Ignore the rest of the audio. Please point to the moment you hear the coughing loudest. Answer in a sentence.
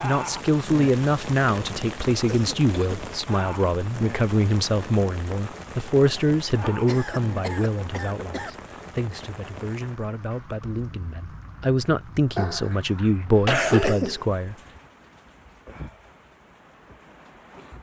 The volume of the coughing peaks at 14 seconds.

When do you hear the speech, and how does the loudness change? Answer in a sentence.
You can hear the speech from 0.0 to 14.6 s, getting quieter then louder.